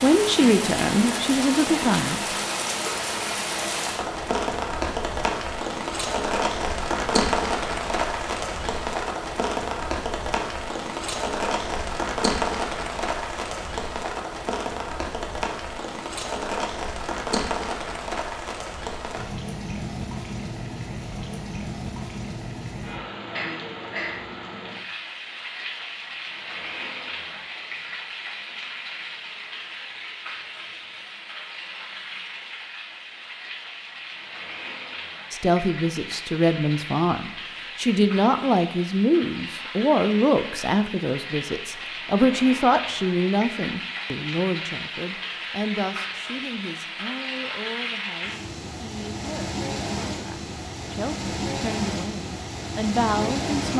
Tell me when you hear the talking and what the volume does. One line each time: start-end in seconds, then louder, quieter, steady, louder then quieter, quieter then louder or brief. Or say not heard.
0.0-2.2 brief
35.3-53.7 quieter then louder.